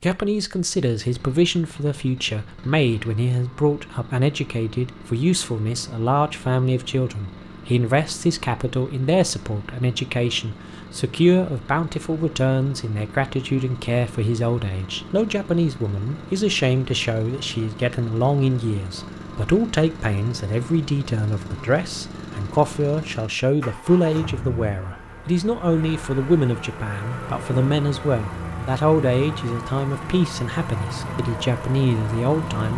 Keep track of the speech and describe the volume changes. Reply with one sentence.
The loudness of the speech stays about the same.